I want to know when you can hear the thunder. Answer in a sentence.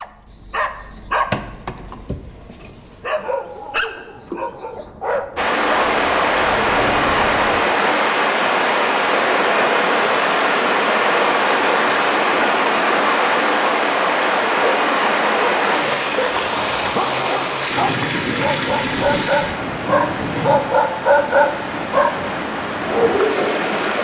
You can hear the thunder from 3.6 to 7.7 s and from 17.7 to 20.6 s.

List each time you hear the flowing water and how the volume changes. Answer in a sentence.
The flowing water can be heard from 5.3 to 24.0 s, getting quieter.